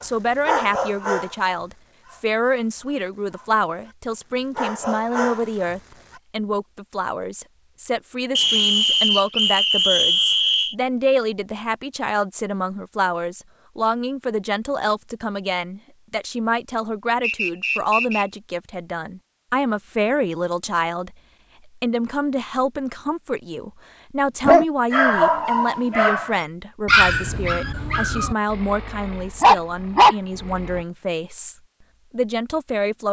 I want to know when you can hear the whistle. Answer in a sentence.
You can hear the whistle from 8.3 to 10.8 s and from 17.2 to 18.2 s.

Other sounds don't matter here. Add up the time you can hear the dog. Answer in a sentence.
You can hear the dog for 12 seconds altogether.